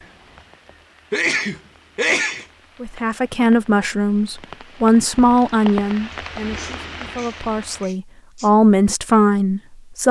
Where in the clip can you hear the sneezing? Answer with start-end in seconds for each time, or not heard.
1.1-2.5, 6.1-8.5.